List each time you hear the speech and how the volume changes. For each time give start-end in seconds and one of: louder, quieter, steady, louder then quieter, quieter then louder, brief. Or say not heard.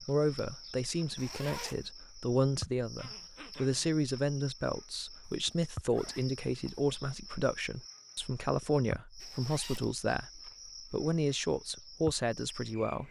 0.0-13.0 steady.